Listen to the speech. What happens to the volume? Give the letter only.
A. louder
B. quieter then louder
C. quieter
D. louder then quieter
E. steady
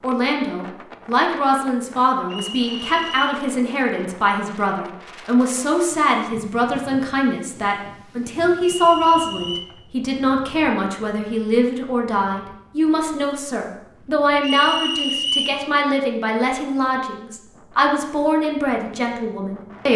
E.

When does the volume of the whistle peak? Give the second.
15 s.